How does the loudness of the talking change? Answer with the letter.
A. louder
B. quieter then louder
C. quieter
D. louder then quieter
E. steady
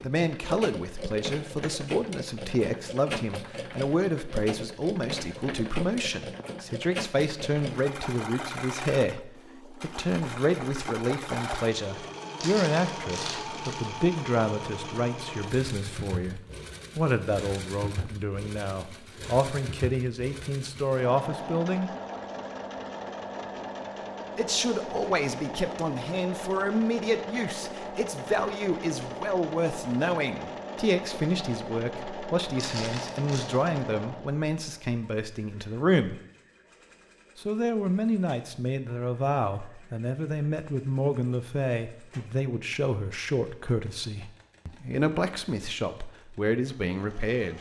E.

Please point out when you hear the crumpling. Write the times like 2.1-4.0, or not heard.
12.4-13.9, 32.6-33.5.